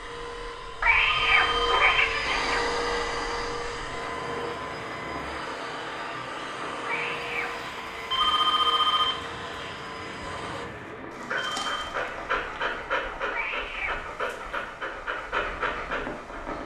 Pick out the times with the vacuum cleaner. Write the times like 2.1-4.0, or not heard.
0.0-10.7.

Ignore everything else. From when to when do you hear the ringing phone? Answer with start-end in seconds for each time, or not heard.
1.0-1.9, 8.1-9.2, 11.3-11.9.